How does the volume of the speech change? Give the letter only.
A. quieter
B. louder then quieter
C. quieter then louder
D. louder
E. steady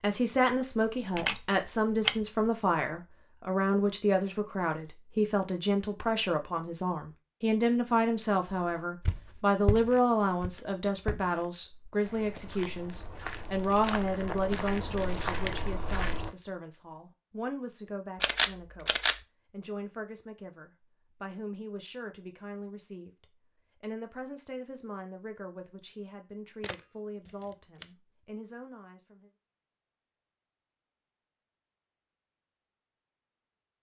A.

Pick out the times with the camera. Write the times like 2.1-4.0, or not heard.
0.9-2.5, 18.2-19.2, 26.6-27.9.